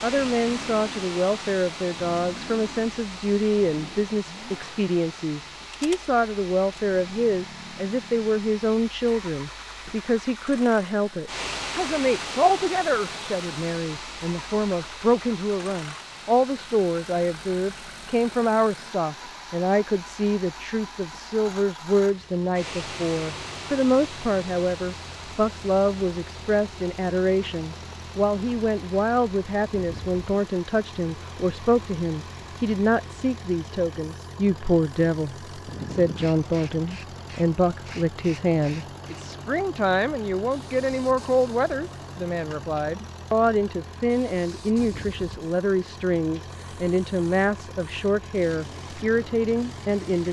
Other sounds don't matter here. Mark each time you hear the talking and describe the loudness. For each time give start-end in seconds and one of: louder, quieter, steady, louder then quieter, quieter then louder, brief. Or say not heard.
0.0-50.2 steady.